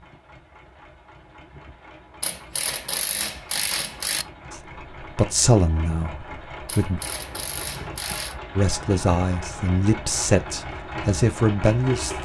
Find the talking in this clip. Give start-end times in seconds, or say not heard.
4.5-7.0, 8.6-12.2.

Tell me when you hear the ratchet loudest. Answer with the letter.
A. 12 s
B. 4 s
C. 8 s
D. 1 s
B.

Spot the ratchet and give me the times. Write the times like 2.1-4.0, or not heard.
2.2-4.2, 6.7-8.3.